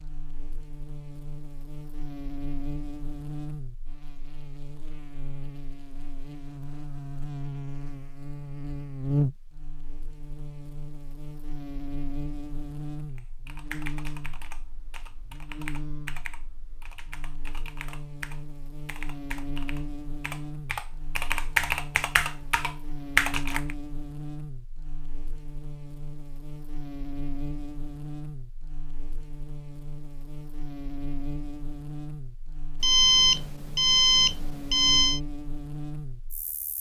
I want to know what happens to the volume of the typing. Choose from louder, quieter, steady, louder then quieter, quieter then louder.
louder.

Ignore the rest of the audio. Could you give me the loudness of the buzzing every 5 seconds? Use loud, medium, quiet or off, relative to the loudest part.
medium, loud, medium, medium, medium, medium, medium, medium.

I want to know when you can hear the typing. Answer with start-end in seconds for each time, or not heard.
13.2-23.8.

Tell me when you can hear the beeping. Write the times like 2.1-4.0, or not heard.
32.8-35.2.